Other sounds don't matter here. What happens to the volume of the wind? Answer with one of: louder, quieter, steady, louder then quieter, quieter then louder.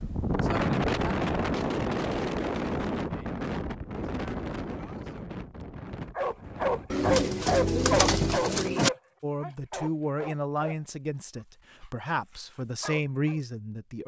quieter.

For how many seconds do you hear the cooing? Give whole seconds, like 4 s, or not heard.
2 s.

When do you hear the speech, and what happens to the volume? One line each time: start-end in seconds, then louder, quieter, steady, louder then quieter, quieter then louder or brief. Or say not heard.
9.2-14.0 quieter then louder.